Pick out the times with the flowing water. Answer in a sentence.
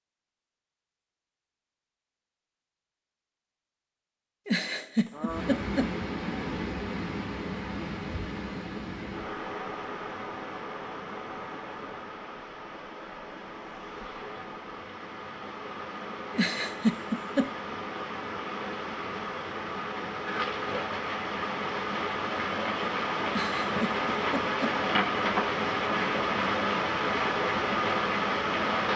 You can hear the flowing water from 5.1 to 28.9 s.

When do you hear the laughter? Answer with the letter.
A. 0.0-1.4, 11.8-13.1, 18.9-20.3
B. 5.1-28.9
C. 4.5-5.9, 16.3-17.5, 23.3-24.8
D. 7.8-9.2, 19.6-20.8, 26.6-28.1
C.